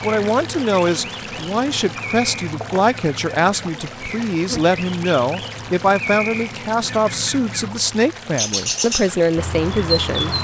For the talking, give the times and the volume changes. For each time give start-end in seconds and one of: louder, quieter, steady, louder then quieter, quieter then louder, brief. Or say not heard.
0.0-10.3 steady.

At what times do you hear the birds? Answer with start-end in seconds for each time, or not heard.
0.0-10.3.